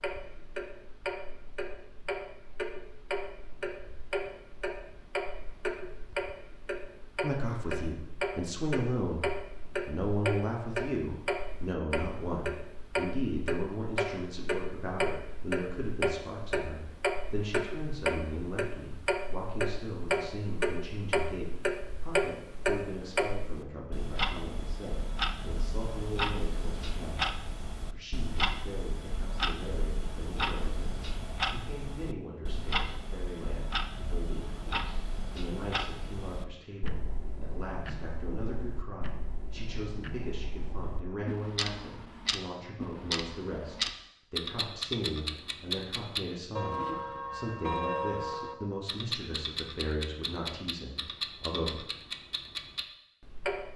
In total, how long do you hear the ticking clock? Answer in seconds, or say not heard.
54 s.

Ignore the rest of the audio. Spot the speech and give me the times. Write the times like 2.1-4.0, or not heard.
7.2-9.2, 9.8-51.8.